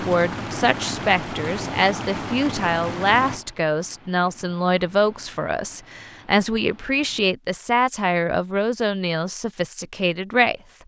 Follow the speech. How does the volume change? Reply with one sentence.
The loudness of the speech stays about the same.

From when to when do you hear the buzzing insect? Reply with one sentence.
The buzzing insect can't be heard in this clip.